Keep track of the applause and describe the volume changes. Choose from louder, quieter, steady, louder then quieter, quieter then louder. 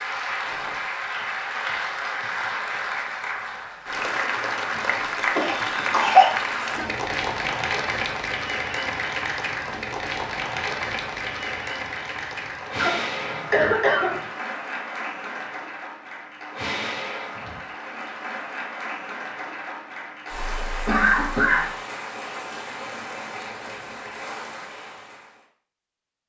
quieter.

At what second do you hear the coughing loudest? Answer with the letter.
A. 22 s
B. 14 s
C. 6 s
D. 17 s
C.